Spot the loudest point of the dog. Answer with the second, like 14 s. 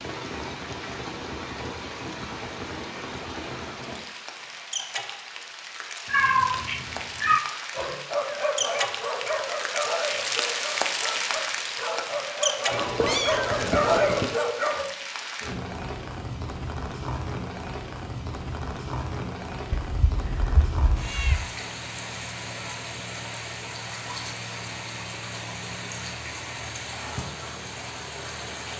14 s.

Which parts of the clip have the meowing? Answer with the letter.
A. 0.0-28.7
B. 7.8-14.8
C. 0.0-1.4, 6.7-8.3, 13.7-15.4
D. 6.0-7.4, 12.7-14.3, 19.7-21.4
D.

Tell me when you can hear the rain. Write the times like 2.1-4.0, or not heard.
0.0-28.7.